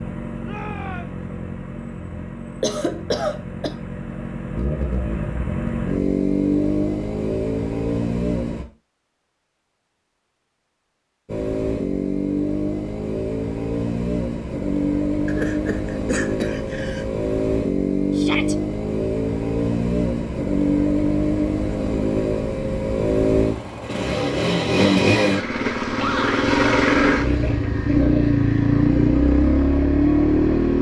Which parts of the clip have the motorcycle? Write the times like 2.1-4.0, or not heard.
0.0-8.7, 11.2-30.7.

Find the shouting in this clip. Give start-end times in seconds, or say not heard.
0.4-1.2, 18.1-18.6, 25.9-26.4.